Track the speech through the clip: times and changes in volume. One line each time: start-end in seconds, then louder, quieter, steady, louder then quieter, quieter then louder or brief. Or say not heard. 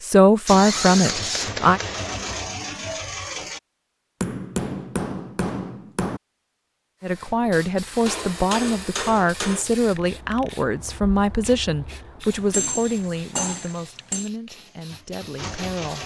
0.0-1.8 brief
7.0-16.0 quieter.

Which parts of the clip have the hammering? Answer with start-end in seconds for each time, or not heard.
0.8-2.2, 4.2-6.2, 8.1-9.7, 12.3-14.3.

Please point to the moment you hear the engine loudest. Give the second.
1 s.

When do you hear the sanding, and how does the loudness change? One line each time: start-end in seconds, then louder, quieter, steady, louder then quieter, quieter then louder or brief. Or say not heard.
not heard.